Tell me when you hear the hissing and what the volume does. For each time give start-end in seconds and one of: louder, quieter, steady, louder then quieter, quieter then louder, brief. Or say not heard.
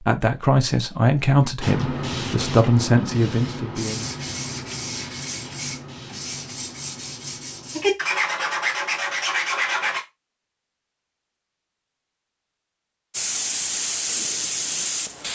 1.6-8.0 quieter
13.1-15.2 brief.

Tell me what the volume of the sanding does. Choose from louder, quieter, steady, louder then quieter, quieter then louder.
louder.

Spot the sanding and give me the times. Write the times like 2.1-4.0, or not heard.
3.8-10.0.